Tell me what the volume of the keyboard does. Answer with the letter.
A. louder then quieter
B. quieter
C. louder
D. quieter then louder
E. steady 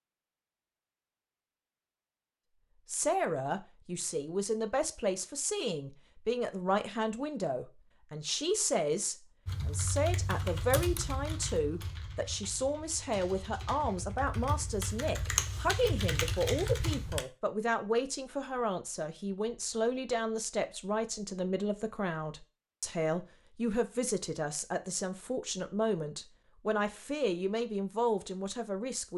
D.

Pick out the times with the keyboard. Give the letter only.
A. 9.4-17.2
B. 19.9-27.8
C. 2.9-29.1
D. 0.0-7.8
A.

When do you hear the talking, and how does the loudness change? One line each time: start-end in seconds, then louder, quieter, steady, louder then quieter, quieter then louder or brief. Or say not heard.
2.9-29.1 steady.